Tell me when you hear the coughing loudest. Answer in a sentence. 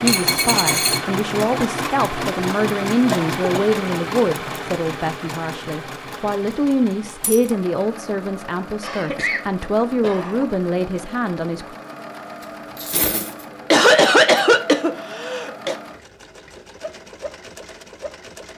The volume of the coughing peaks at 14 seconds.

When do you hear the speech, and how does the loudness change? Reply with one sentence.
The speech can be heard from 0.0 to 11.8 s, at a steady volume.